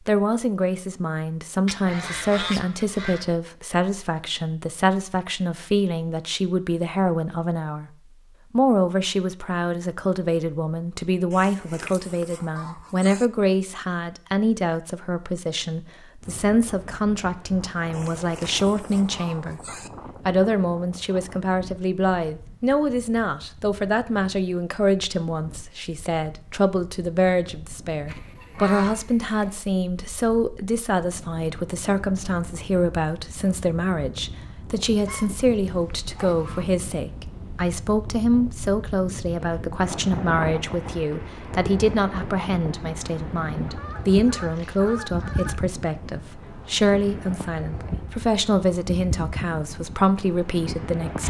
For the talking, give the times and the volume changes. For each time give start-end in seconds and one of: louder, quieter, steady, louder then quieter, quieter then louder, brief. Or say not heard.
0.1-7.9 steady
8.5-19.6 steady
20.2-51.2 steady.